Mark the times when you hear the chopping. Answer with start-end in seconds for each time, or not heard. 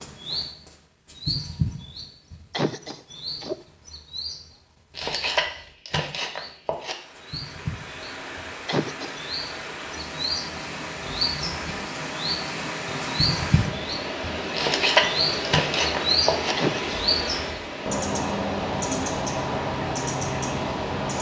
5.0-7.0, 14.5-16.6.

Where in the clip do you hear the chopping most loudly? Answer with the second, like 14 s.
15 s.